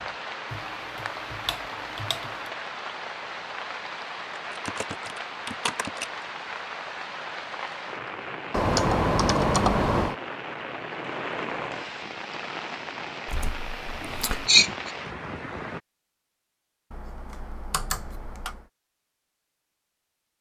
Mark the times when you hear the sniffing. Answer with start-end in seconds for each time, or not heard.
14.0-14.9.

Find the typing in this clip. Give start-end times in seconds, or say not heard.
0.5-2.5, 4.5-6.0, 8.5-10.2, 13.2-14.5, 16.9-18.6.